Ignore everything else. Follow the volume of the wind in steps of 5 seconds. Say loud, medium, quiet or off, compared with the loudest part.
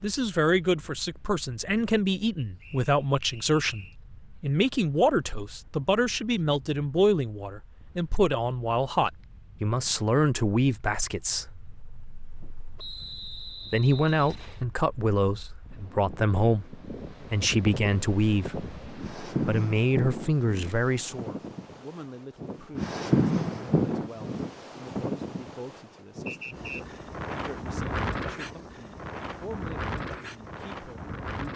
quiet, quiet, quiet, medium, loud, medium, medium.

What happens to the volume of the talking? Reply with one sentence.
The volume of the talking goes down.